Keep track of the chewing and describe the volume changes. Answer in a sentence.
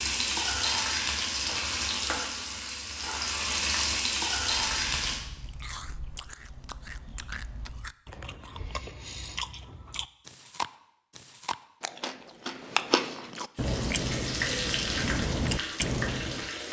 The volume of the chewing goes up.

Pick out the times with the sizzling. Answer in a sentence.
The sizzling can be heard from 0.0 to 5.2 s and from 13.6 to 16.6 s.